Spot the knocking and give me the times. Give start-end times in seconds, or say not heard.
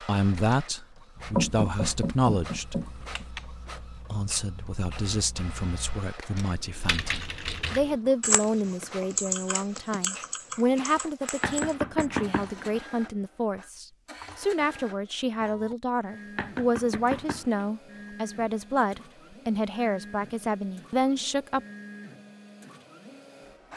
1.4-3.2, 11.4-12.8, 16.4-17.7.